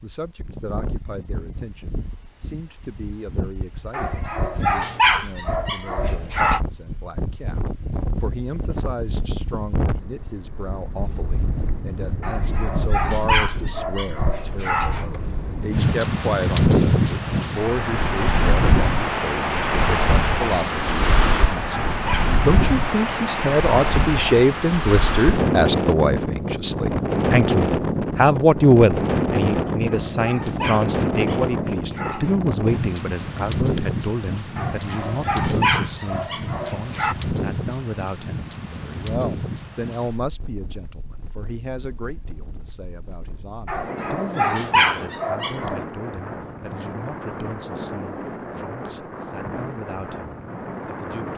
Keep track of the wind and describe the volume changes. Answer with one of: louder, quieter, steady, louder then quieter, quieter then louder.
louder then quieter.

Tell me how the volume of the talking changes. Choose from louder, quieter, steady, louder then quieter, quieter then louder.
louder then quieter.